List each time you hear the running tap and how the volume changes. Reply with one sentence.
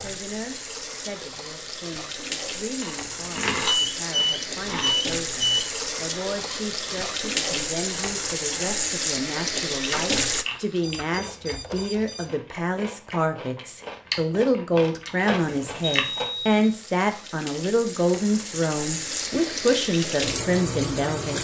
The running tap can be heard from 0.0 to 10.4 s, getting louder; and from 15.3 to 21.3 s, getting louder.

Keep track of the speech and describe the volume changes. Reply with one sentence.
The loudness of the speech goes up.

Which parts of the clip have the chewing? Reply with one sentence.
The chewing can be heard from 2.8 to 5.0 s and from 9.7 to 16.3 s.